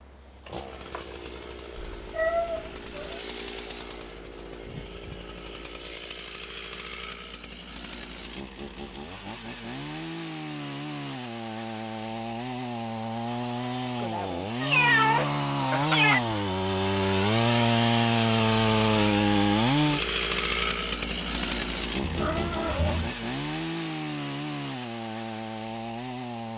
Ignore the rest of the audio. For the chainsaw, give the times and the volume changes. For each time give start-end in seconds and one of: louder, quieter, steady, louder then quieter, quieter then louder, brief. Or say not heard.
0.0-26.5 louder then quieter.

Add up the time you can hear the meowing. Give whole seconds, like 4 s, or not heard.
4 s.